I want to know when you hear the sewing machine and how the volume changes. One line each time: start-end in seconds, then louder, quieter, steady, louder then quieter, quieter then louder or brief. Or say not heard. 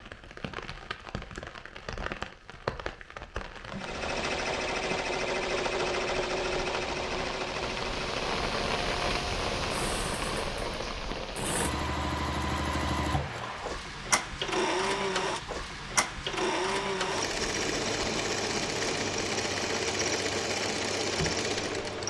3.7-22.0 quieter then louder.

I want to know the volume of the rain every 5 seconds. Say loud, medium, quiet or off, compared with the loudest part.
medium, loud, loud, medium, medium.